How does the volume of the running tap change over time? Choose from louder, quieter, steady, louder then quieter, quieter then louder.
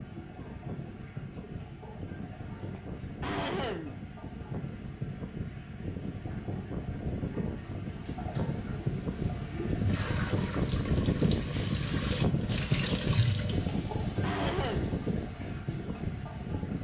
louder.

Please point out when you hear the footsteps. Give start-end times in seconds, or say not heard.
not heard.